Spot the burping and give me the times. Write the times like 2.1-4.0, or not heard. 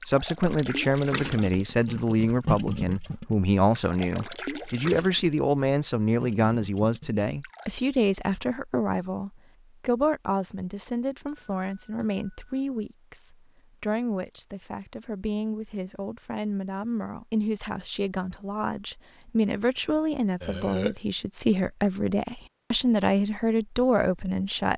20.4-20.9.